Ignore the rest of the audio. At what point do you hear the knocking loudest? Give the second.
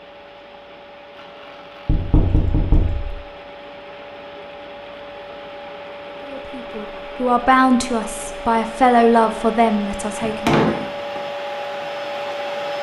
11 s.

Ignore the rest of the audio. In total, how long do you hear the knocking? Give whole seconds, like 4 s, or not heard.
2 s.